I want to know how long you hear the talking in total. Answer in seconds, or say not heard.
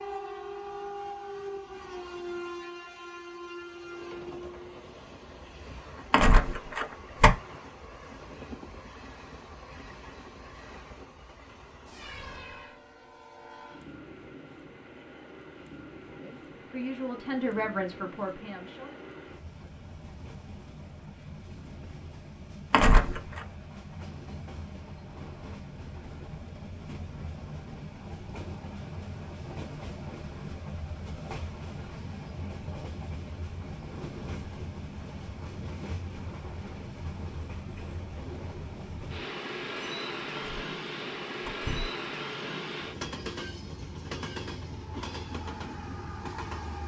3 s.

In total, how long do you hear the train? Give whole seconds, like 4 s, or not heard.
47 s.